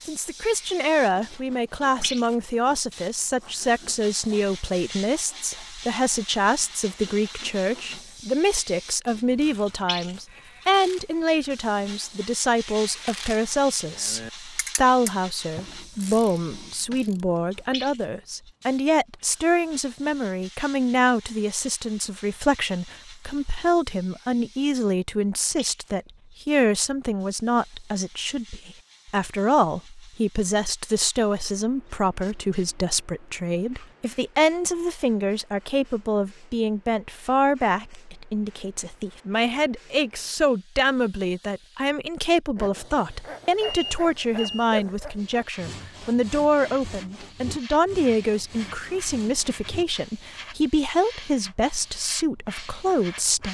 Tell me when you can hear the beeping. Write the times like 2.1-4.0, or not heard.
43.6-44.7.